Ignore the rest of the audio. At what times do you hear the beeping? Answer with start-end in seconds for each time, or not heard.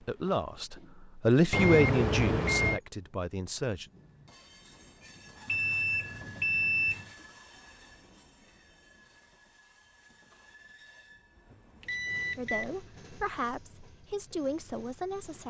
1.5-2.8, 5.5-7.1, 11.8-12.7.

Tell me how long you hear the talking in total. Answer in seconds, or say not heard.
7 s.